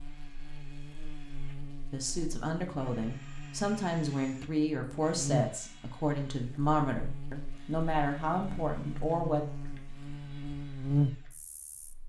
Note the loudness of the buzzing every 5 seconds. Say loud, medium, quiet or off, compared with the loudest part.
quiet, medium, loud.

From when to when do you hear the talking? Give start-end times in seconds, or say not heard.
1.9-9.4.